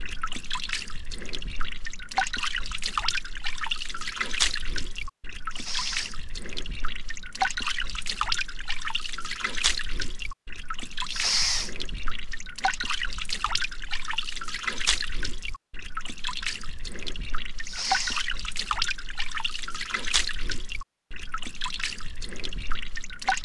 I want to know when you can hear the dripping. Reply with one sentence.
You can hear the dripping from 0.0 to 23.4 s.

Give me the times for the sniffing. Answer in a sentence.
The sniffing can be heard from 5.5 to 6.2 s, from 11.1 to 11.7 s and from 17.6 to 18.2 s.